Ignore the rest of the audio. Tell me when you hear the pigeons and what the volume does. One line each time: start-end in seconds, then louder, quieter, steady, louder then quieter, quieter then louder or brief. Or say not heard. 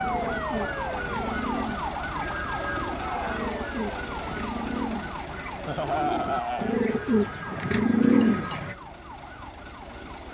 0.0-8.8 louder.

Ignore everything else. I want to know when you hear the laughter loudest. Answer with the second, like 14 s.
6 s.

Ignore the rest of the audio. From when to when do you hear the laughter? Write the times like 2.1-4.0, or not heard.
2.9-3.5, 5.7-6.8.